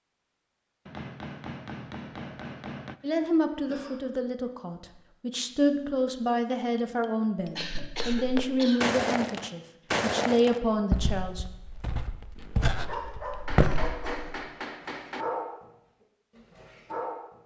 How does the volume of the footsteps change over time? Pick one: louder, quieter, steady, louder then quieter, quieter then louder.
quieter then louder.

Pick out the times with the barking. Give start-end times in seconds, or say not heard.
12.7-15.7, 16.4-17.4.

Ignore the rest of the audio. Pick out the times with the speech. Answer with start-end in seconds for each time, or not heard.
3.0-11.4.